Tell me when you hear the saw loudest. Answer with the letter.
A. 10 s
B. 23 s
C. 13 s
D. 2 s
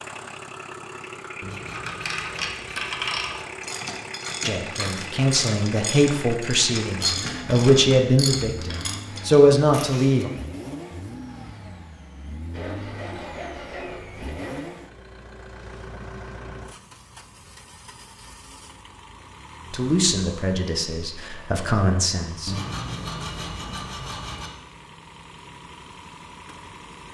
B.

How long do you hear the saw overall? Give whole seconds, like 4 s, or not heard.
6 s.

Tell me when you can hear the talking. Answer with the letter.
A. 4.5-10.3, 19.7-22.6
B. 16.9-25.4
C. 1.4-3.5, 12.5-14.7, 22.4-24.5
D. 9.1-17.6
A.